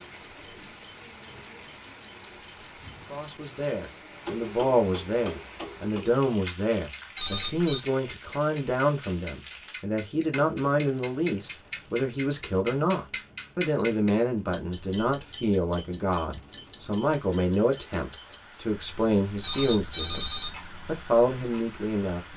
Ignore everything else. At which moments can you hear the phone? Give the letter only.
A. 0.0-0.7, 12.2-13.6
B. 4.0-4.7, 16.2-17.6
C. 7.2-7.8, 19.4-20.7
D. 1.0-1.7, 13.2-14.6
C.